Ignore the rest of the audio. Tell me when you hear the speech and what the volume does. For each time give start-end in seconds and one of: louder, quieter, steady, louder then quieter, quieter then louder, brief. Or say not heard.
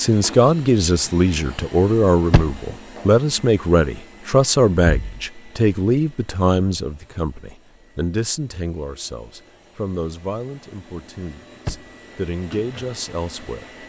0.0-13.7 quieter.